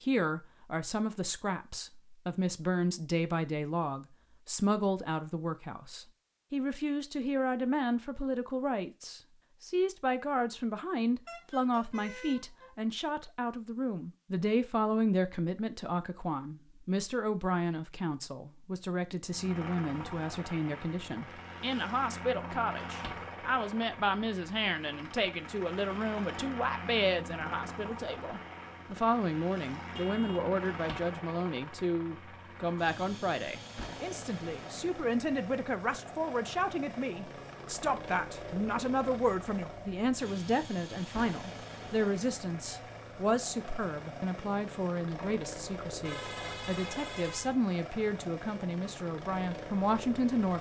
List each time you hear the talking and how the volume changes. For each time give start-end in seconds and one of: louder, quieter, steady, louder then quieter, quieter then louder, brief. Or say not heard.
0.0-50.5 steady.